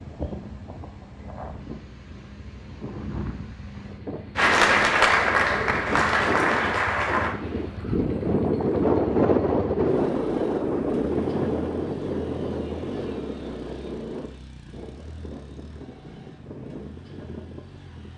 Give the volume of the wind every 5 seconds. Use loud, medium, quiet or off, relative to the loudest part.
quiet, loud, loud, quiet.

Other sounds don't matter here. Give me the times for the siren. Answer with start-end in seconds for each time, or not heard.
not heard.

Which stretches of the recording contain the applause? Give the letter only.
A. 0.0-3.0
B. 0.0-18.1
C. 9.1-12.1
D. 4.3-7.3
D.